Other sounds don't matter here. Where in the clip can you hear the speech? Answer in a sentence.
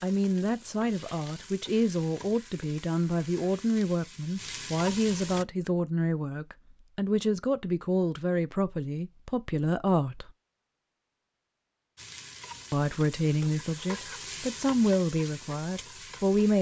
You can hear the speech from 0.0 to 10.3 s and from 12.7 to 16.5 s.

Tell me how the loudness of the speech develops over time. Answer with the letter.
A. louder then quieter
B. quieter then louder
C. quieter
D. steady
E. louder
D.